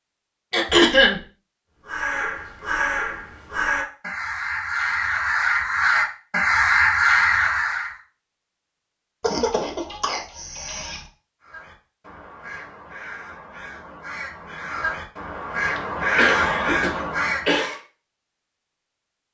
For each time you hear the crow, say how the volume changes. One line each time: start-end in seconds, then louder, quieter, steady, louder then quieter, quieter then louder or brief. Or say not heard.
1.9-8.0 louder
11.4-17.6 louder.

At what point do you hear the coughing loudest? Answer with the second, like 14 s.
1 s.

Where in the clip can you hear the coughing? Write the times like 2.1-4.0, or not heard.
0.5-1.2, 9.2-11.1, 15.8-17.8.